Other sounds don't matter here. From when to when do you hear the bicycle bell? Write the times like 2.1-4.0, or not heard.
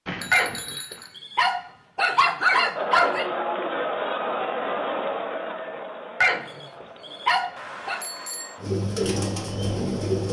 0.1-1.1, 7.5-8.6.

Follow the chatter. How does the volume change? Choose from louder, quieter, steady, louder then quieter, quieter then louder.
quieter.